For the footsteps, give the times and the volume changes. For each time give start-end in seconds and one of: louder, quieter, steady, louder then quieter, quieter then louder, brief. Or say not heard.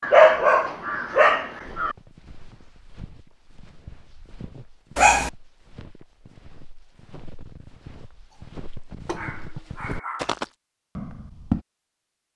1.6-11.7 louder.